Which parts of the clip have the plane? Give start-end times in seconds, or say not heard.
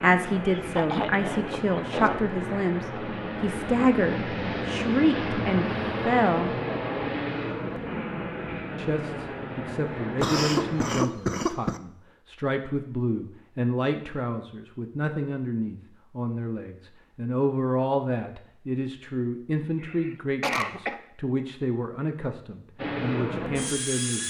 0.0-11.0, 22.8-24.2.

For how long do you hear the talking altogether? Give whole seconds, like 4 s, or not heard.
22 s.